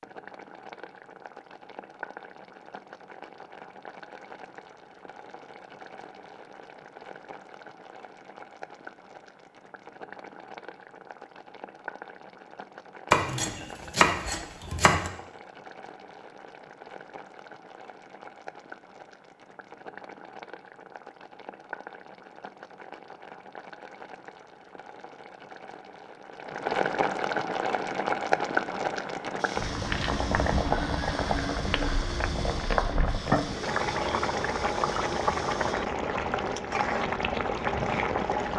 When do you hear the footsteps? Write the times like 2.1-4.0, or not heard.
not heard.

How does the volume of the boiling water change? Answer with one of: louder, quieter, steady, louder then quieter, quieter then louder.
louder.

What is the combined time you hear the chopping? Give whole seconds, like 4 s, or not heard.
2 s.